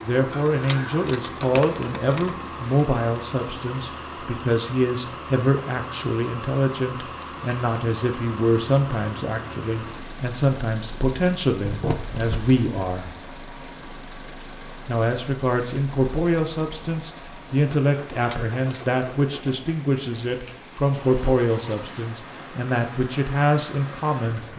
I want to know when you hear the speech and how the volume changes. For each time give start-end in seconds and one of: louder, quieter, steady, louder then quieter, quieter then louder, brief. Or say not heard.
0.0-13.2 steady
14.8-24.5 steady.